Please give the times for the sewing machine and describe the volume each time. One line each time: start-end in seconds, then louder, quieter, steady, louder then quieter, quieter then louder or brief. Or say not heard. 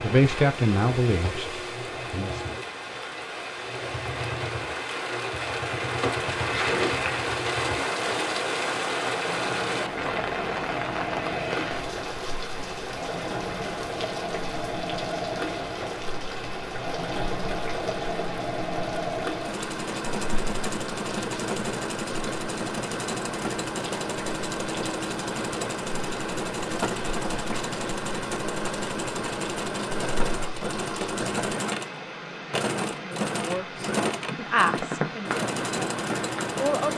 0.0-36.9 louder.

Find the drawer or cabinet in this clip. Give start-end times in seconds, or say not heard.
6.0-7.2.